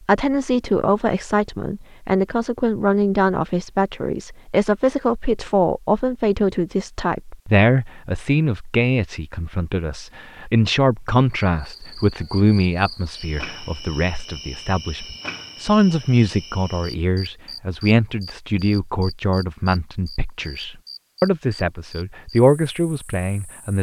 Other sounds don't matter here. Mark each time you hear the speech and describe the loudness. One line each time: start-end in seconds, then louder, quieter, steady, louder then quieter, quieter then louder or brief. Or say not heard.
0.1-23.7 steady.